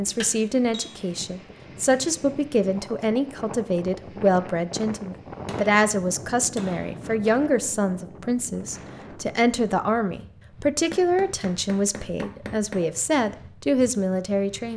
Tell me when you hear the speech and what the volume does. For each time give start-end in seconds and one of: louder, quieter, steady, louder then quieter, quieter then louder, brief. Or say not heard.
0.0-14.7 steady.